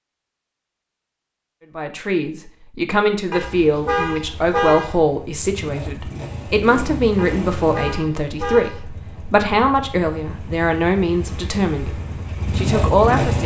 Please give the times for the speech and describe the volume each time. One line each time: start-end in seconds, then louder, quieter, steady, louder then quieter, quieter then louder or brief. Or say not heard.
1.8-13.4 steady.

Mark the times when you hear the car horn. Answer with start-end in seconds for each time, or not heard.
3.3-5.0, 7.2-8.8.